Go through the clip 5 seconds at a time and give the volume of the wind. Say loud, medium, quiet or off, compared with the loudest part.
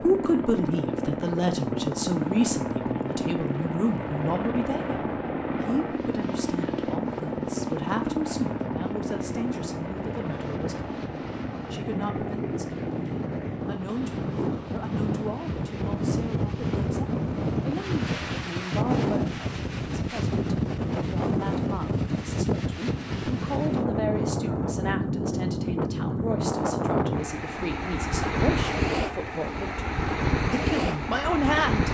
quiet, quiet, medium, loud, loud, loud, loud.